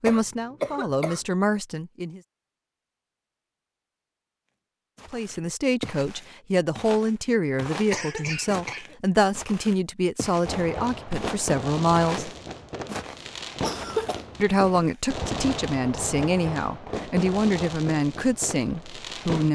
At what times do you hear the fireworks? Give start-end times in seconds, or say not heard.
10.4-19.5.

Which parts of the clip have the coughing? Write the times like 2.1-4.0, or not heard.
0.1-1.2, 7.9-8.9, 13.6-14.2.